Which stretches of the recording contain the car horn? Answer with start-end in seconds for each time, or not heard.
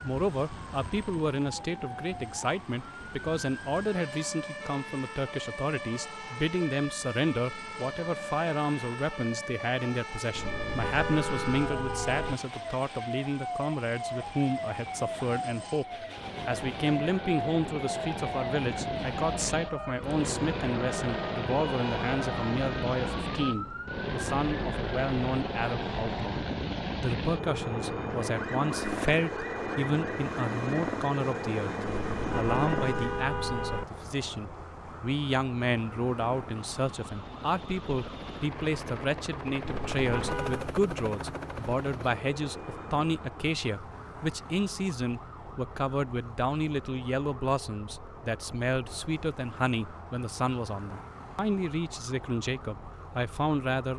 10.3-12.3, 31.9-33.9, 39.6-40.7.